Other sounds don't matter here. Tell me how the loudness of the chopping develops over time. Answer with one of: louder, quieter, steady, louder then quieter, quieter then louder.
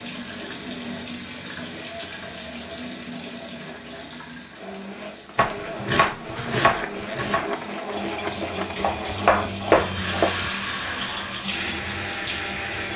quieter then louder.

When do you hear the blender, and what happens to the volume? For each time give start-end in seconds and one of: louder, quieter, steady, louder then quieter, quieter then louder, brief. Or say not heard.
0.2-12.9 louder.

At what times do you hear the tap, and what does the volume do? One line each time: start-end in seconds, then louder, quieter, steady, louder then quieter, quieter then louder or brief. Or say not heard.
0.0-12.9 quieter then louder.